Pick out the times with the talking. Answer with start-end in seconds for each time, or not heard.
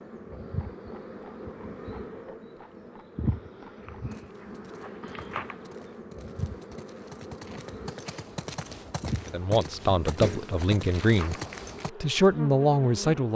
9.2-11.3, 12.0-13.3.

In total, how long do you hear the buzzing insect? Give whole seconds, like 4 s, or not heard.
13 s.